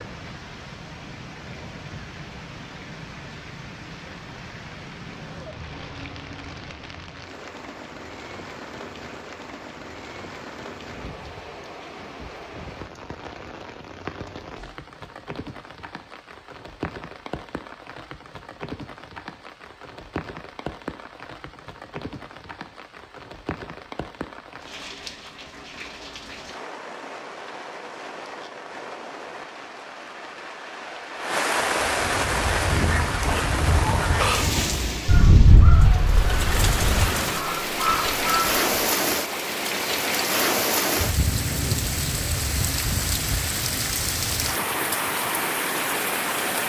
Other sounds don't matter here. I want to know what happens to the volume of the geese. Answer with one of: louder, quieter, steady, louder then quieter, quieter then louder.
louder then quieter.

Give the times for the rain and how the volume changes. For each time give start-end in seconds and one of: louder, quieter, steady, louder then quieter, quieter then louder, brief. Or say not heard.
0.0-46.6 louder.